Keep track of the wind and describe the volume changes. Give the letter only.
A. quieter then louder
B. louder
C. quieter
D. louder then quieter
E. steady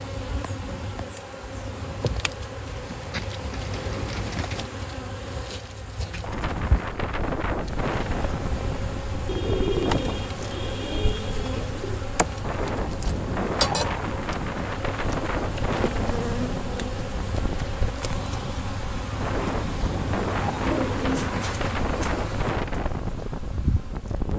E.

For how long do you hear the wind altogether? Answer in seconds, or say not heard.
18 s.